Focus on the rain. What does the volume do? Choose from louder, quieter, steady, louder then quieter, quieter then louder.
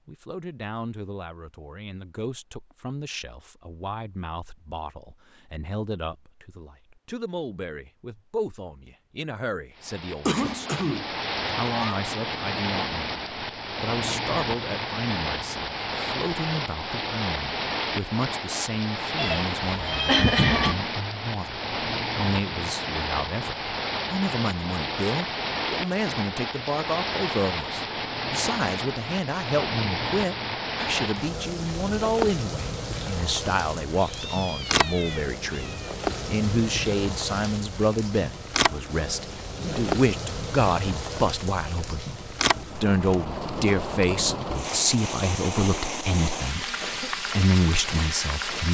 steady.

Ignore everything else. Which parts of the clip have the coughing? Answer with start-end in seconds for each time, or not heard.
10.2-11.1, 20.1-20.8, 39.5-40.0.